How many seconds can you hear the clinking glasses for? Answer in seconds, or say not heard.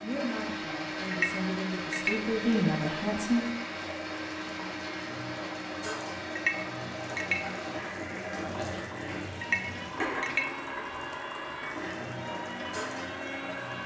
3 s.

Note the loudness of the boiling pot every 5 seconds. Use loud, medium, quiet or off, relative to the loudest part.
medium, loud, loud.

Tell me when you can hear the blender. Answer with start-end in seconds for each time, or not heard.
0.0-13.8.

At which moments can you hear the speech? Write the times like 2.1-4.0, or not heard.
0.0-3.5.